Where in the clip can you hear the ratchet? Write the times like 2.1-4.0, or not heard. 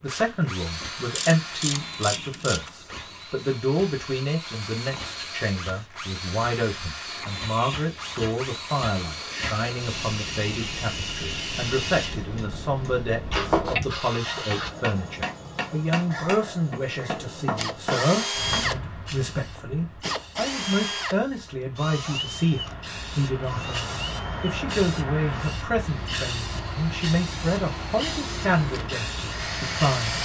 1.1-2.7.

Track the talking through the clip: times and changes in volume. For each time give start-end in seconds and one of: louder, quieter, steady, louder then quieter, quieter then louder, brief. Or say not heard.
0.0-30.2 steady.